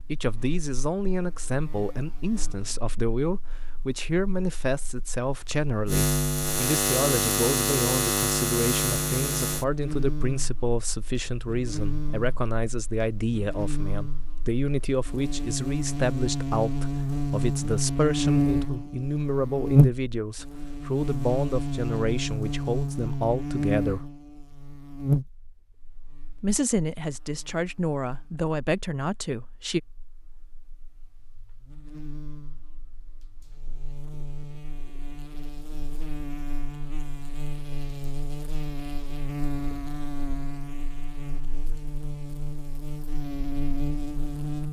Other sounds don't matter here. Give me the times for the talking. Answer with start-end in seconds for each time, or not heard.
0.1-24.1, 26.4-29.8.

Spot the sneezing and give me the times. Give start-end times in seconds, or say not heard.
not heard.